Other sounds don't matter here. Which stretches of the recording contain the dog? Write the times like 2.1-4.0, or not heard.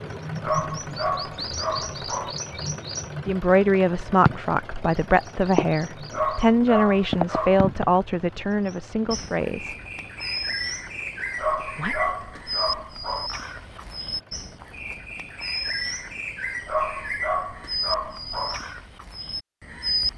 0.4-2.4, 6.1-7.7, 11.3-13.3, 16.6-18.6.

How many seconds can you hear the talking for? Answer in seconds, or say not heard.
7 s.